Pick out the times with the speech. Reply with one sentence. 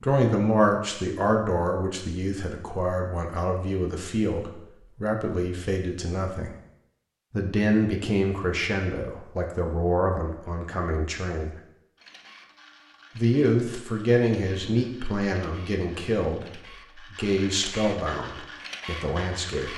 The speech can be heard from 0.0 to 6.5 s, from 7.3 to 11.6 s and from 13.2 to 19.7 s.